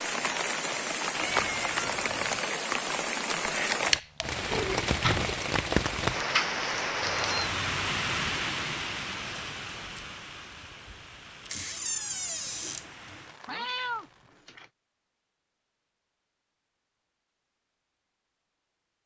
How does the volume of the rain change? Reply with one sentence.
The volume of the rain goes down.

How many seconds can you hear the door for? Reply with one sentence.
You can hear the door for 2 seconds altogether.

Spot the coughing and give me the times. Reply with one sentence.
The coughing can't be heard in this clip.